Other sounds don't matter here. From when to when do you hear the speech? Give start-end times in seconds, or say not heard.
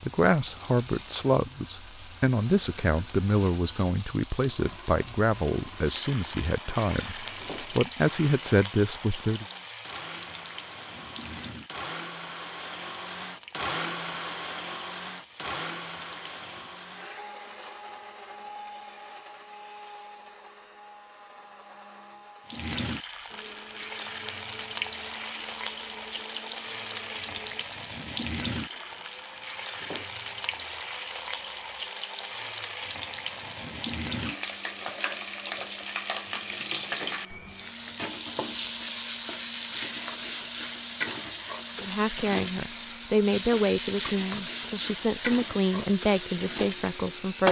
0.0-9.4, 41.8-47.4.